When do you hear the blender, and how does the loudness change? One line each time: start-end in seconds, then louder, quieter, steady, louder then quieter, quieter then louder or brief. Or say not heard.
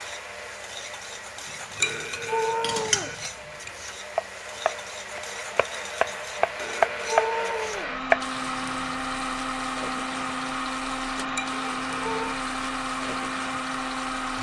0.0-14.3 louder.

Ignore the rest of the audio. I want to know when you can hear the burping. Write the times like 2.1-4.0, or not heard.
1.8-3.1, 6.6-8.0, 11.5-12.4.